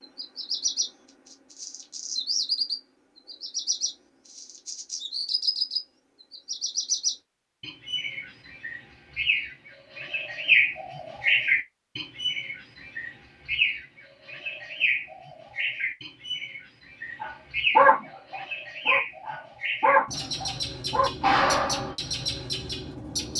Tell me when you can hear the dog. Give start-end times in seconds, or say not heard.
17.2-21.9.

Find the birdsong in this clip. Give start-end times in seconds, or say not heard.
0.0-23.3.